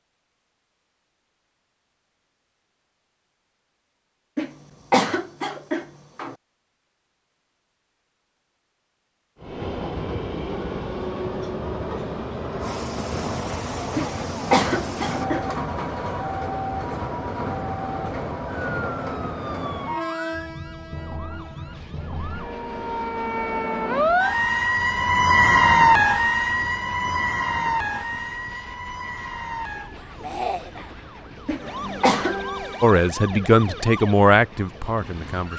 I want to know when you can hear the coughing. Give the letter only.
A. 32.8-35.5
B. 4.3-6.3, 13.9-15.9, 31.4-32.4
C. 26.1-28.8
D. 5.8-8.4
B.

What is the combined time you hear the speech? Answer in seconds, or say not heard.
3 s.